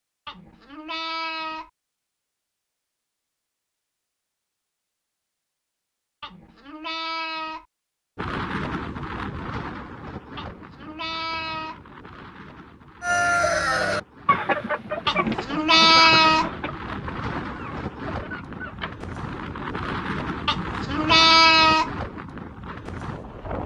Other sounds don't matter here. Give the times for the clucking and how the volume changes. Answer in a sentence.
You can hear the clucking from 13.0 to 18.9 s, getting quieter.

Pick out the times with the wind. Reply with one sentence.
The wind can be heard from 8.2 to 23.6 s.